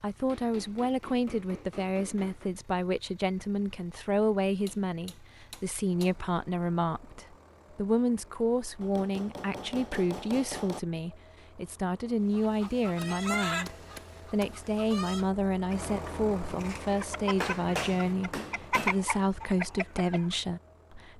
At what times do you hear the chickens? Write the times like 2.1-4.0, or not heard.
12.3-20.4.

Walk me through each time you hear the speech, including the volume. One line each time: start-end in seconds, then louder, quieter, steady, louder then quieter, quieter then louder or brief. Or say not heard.
0.0-21.1 steady.